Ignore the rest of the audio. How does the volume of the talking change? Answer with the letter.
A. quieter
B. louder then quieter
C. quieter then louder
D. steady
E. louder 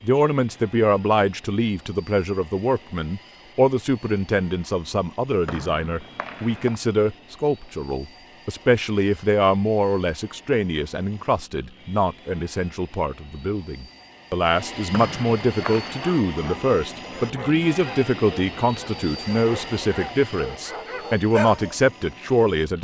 D.